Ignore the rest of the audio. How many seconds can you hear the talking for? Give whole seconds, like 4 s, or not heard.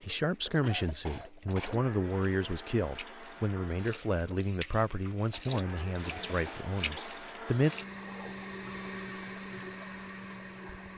8 s.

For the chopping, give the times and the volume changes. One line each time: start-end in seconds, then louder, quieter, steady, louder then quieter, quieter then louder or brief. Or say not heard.
not heard.